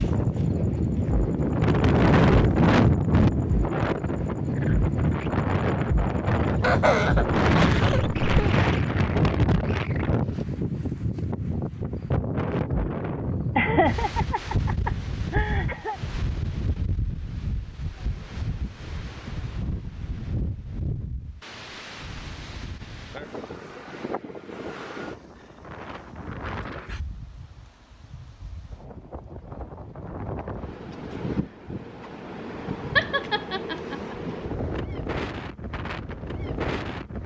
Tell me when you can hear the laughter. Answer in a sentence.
You can hear the laughter from 6.4 to 8.6 s, from 13.6 to 16.0 s and from 33.0 to 34.1 s.